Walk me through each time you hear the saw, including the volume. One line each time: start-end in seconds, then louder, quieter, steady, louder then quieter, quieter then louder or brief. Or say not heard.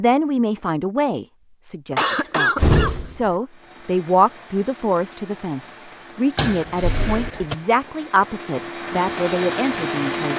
not heard.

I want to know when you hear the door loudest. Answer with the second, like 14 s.
3 s.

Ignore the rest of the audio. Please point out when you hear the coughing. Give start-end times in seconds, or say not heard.
1.9-2.9.